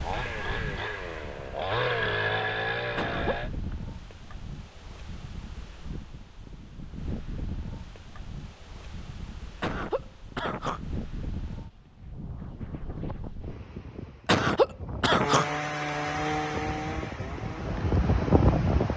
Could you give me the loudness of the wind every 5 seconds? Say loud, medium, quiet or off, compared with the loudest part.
quiet, quiet, quiet, loud.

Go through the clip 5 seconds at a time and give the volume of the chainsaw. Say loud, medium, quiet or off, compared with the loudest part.
loud, off, off, loud.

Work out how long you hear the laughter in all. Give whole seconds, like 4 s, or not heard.
3 s.